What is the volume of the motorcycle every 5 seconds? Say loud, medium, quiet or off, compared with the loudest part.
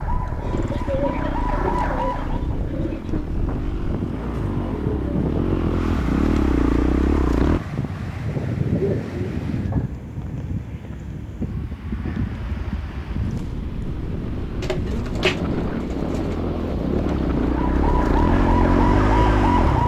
medium, loud, quiet, loud.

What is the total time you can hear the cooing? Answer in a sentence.
You can hear the cooing for 6 seconds altogether.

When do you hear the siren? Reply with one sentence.
The siren can be heard from 0.0 to 2.5 s and from 17.5 to 19.8 s.